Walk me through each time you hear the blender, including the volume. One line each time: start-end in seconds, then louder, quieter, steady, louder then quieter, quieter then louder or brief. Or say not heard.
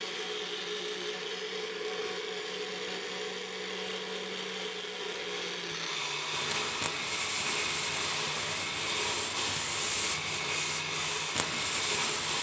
0.0-12.3 steady.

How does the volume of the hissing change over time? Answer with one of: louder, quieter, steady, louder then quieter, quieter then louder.
steady.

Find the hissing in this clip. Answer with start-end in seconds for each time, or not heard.
6.3-12.3.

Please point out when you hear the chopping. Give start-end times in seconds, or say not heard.
not heard.